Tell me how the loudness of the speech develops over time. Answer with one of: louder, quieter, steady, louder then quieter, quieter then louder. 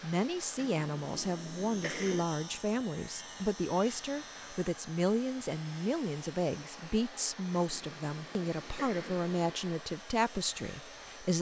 steady.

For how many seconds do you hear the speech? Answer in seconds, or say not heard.
11 s.